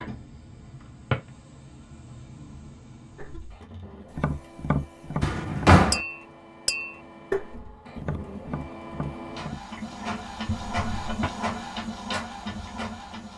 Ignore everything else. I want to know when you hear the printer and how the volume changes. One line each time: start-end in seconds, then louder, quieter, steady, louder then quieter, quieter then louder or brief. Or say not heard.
0.0-13.3 louder.